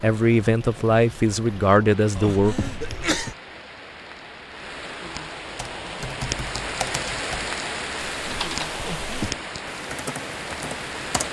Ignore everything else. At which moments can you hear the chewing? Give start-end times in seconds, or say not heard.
not heard.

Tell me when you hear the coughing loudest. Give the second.
3 s.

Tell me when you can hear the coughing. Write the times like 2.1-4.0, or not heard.
2.1-3.4, 8.8-9.4.